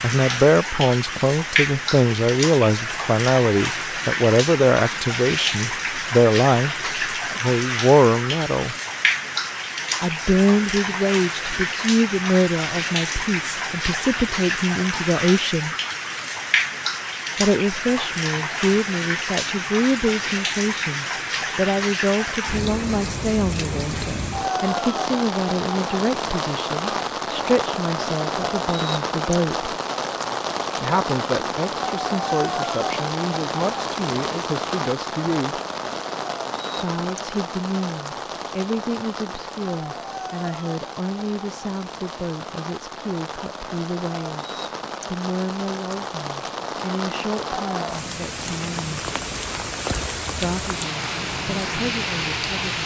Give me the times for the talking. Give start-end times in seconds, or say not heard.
0.0-8.8, 10.0-15.8, 17.4-29.8, 30.8-35.6, 36.8-49.0, 50.3-52.8.